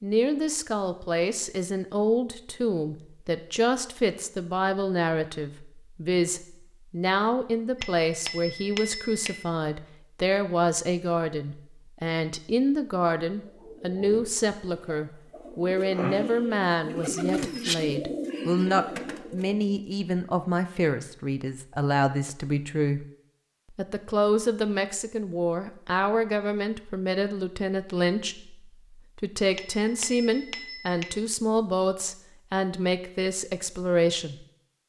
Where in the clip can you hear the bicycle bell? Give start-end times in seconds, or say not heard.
7.8-9.6, 29.6-31.2.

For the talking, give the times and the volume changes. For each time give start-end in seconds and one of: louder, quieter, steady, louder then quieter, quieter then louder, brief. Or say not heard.
0.0-23.1 steady
23.8-34.5 steady.